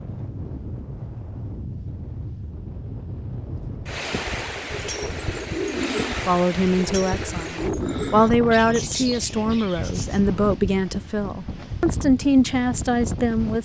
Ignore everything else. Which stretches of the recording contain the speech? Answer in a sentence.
You can hear the speech from 6.2 to 13.6 s.